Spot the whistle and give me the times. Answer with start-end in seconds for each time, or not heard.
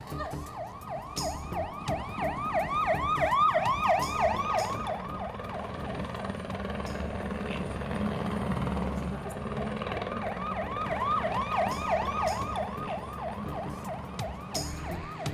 not heard.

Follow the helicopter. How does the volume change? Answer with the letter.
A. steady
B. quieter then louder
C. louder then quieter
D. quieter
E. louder
C.